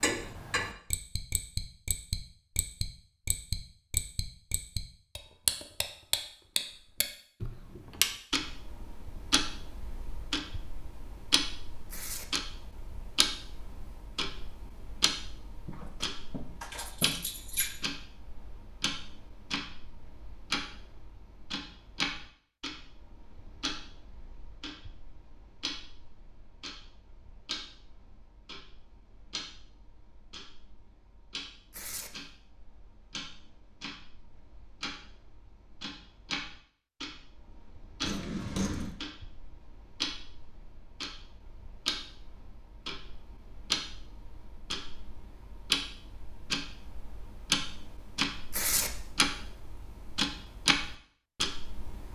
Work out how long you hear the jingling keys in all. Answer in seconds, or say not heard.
3 s.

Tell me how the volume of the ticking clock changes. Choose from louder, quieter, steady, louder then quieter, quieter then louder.
quieter then louder.